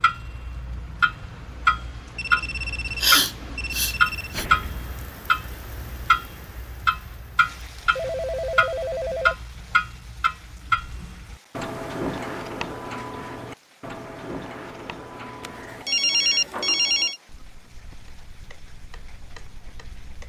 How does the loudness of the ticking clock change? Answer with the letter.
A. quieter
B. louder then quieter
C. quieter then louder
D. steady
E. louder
A.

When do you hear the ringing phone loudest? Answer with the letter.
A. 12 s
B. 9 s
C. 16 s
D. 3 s
C.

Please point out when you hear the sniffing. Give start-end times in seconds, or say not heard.
3.0-4.5.